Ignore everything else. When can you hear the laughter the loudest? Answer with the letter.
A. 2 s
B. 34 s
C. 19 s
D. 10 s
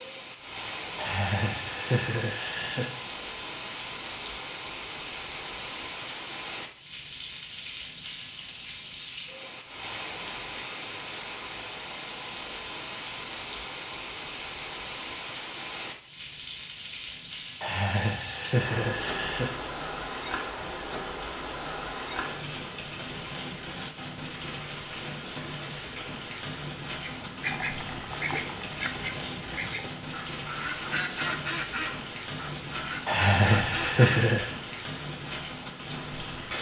B.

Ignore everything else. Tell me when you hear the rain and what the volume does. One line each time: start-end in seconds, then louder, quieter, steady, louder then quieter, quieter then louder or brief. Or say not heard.
0.0-36.5 steady.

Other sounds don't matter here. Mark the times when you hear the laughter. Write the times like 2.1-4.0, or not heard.
0.9-2.9, 17.6-19.5, 33.0-34.5.